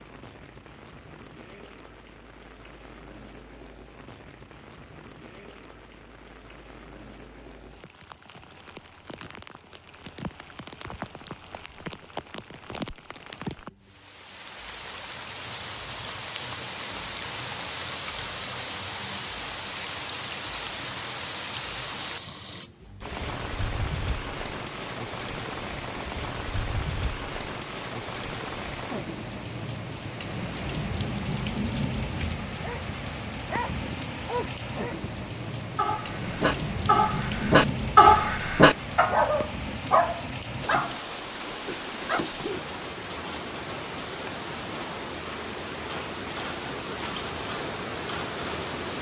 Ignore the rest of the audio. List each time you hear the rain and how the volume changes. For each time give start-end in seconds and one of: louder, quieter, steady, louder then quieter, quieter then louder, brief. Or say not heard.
0.0-48.9 louder.